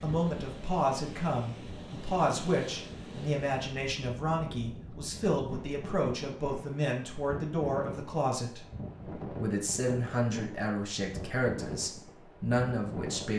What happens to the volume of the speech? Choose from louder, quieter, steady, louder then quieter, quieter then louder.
steady.